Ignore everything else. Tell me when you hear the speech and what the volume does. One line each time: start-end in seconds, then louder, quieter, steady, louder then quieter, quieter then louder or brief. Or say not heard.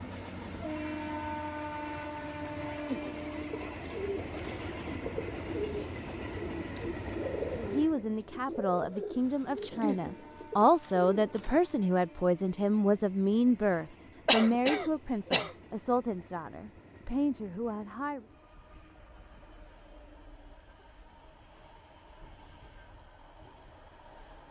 7.5-18.2 louder then quieter.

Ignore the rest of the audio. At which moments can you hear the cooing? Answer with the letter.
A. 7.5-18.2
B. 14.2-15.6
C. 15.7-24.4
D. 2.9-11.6
D.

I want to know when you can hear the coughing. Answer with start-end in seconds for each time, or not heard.
14.2-15.6.